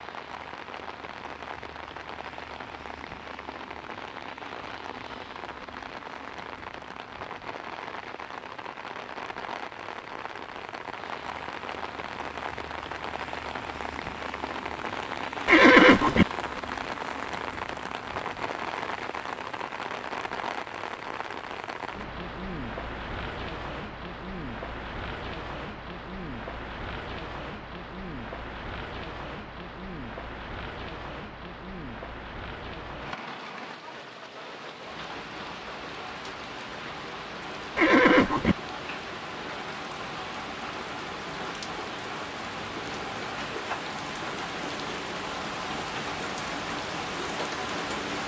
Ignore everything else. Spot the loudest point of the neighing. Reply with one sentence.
The loudest moment of the neighing is at 16 seconds.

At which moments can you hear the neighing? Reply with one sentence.
You can hear the neighing from 15.4 to 16.2 s and from 37.8 to 38.5 s.